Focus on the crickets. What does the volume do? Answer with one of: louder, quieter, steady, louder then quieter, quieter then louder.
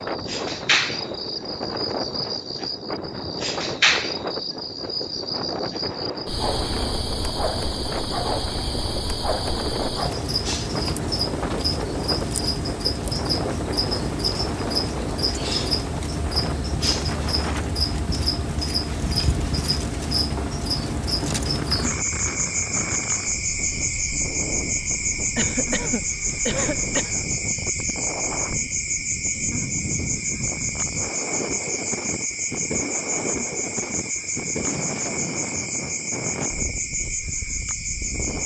steady.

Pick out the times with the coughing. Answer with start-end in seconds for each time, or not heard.
25.4-27.1.